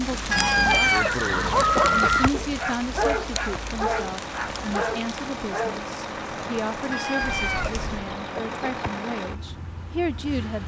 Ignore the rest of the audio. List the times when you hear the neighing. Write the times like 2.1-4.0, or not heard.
0.3-2.3, 7.2-8.2.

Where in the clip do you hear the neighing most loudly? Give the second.
2 s.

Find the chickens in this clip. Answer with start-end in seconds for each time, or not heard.
0.3-2.3, 6.9-8.9.